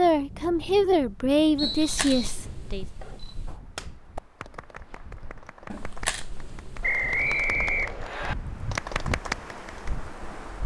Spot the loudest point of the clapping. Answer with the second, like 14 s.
9 s.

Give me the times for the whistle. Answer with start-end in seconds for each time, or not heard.
1.6-2.1, 6.8-8.3.